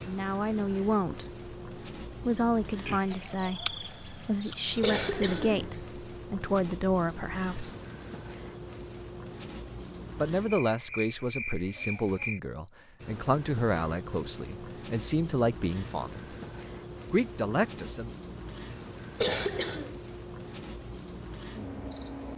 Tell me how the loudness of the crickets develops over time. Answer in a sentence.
The volume of the crickets stays about the same.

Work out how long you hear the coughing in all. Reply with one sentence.
You can hear the coughing for 2 seconds altogether.